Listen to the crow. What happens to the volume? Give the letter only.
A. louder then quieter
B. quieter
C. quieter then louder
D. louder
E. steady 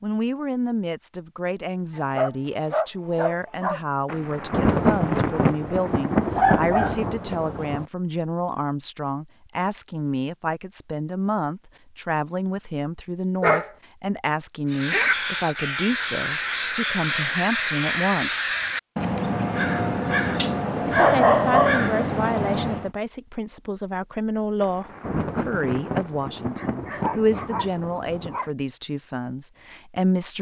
E.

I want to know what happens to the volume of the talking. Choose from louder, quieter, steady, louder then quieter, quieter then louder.
steady.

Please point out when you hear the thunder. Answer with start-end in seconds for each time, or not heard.
4.0-7.8, 24.6-28.4.